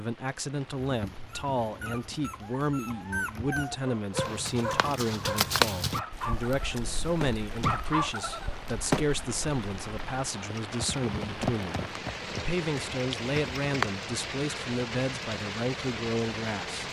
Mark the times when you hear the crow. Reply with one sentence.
The crow can't be heard in this clip.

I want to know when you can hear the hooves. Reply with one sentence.
The hooves can be heard from 4.1 to 13.9 s.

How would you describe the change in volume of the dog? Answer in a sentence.
The loudness of the dog goes up.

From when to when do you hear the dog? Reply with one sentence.
The dog can be heard from 0.8 to 9.2 s.